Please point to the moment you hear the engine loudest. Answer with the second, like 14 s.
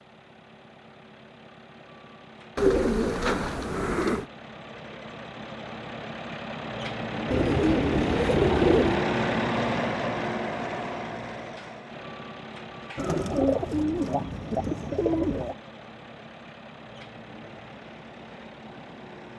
9 s.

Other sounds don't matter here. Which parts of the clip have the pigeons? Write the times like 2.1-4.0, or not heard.
2.5-4.2, 7.3-9.1, 12.9-15.6.